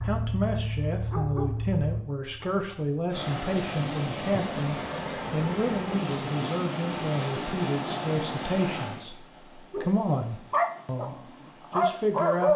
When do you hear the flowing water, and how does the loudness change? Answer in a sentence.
You can hear the flowing water from 3.1 to 12.5 s, getting quieter.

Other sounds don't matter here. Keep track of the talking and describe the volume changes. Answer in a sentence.
The loudness of the talking stays about the same.